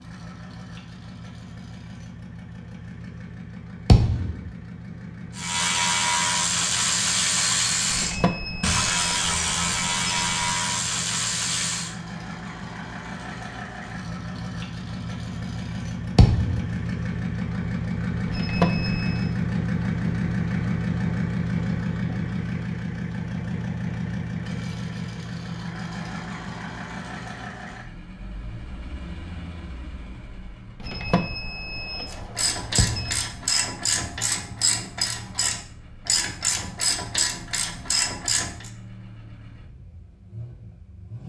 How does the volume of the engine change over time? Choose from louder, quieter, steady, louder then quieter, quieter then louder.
louder then quieter.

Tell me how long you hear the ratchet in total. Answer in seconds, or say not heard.
13 s.